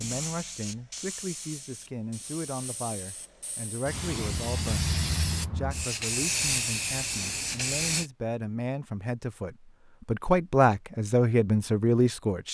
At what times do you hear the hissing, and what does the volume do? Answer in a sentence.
The hissing can be heard from 0.0 to 8.1 s, getting quieter then louder.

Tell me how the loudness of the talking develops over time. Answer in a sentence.
The loudness of the talking goes up.